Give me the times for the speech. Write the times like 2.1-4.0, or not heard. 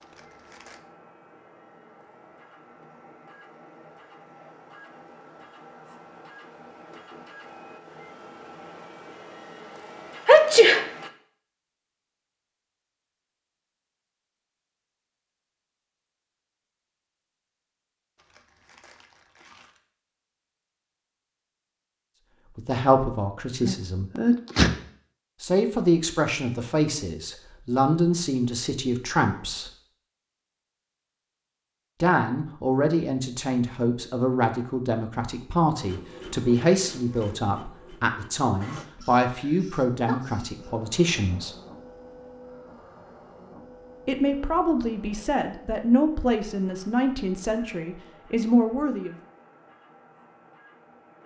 22.6-24.1, 25.4-29.7, 32.0-41.5, 44.0-49.1.